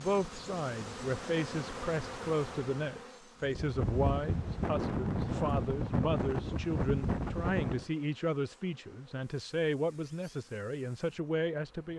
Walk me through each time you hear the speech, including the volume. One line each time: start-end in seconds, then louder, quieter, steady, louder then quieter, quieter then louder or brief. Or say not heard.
0.0-11.9 steady.